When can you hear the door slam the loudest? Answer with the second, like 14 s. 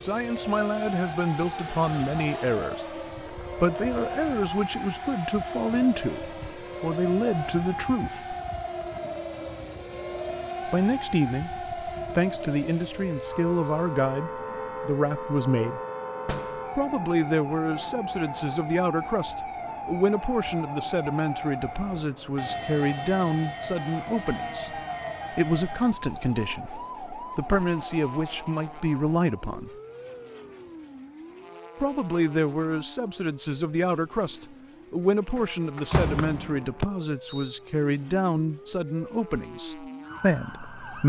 36 s.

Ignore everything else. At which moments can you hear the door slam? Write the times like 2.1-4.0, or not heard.
16.2-16.7, 35.4-36.7.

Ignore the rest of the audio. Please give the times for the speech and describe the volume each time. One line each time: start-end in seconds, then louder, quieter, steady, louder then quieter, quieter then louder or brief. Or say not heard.
0.0-8.3 steady
10.7-15.8 steady
16.8-29.7 steady
31.8-41.0 steady.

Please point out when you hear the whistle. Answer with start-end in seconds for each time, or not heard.
36.1-37.6.